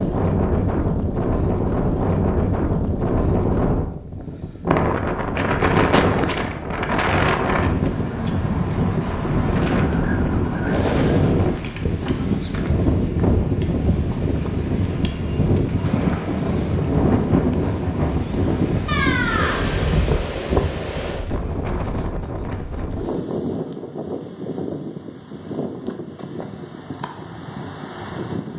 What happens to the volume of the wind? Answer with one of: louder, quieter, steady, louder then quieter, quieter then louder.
quieter.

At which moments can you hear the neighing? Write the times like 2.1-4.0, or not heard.
10.7-11.4, 18.9-19.9.